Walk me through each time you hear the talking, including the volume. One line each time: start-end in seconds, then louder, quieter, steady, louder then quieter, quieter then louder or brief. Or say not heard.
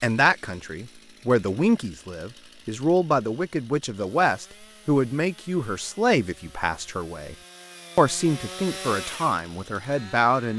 0.0-7.3 steady
8.0-10.5 brief.